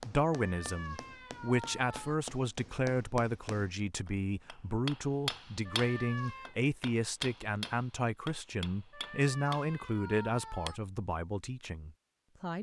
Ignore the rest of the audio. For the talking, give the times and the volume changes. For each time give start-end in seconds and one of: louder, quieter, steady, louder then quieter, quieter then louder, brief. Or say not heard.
0.1-12.5 steady.